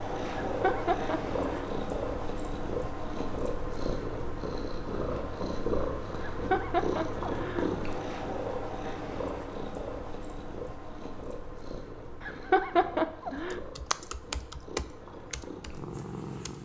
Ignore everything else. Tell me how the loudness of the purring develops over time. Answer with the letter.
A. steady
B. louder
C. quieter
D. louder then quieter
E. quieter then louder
C.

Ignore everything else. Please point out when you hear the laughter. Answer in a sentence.
The laughter can be heard from 0.5 to 1.6 s, from 6.3 to 7.8 s and from 12.2 to 13.6 s.